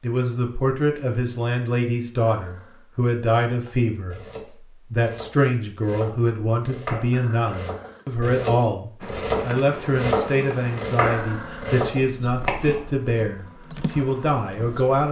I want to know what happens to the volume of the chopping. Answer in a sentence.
The volume of the chopping goes up.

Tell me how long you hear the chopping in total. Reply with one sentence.
The chopping can be heard for 9 seconds in total.